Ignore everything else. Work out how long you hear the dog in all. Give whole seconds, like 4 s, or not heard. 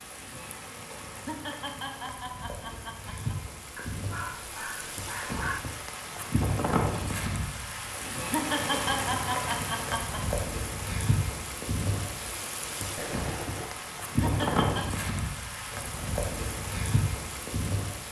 3 s.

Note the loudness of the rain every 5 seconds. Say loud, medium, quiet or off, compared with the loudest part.
medium, loud, loud, loud.